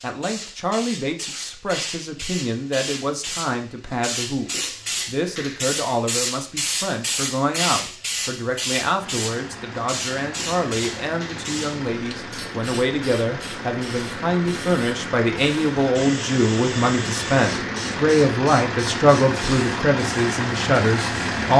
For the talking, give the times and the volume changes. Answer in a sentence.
You can hear the talking from 0.0 to 21.5 s, getting louder.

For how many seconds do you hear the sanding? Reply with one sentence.
You can't hear the sanding here.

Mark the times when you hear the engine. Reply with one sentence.
The engine can be heard from 8.9 to 21.5 s.